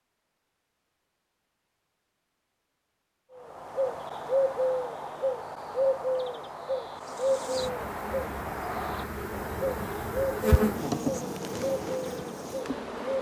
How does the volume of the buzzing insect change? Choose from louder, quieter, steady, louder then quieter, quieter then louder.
louder then quieter.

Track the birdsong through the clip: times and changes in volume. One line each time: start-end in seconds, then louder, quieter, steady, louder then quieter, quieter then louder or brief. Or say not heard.
3.4-13.1 quieter.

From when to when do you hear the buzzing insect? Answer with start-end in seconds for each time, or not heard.
7.0-13.1.